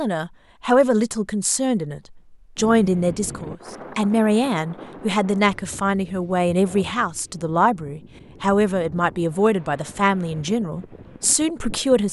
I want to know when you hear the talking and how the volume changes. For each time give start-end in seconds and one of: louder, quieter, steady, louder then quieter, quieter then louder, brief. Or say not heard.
0.0-12.0 steady.